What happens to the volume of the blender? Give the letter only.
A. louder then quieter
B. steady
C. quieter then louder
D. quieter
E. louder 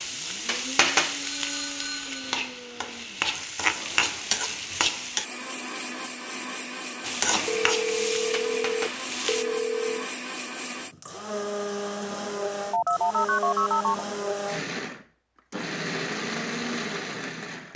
E.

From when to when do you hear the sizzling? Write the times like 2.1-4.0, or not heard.
0.0-5.2, 7.0-9.4.